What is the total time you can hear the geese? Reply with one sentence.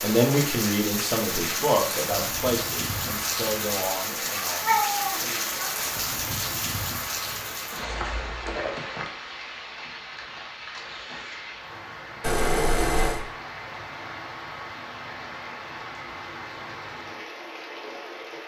You can't hear the geese here.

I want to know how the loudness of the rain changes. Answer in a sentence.
The loudness of the rain goes down.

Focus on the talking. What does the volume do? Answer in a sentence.
The volume of the talking goes down.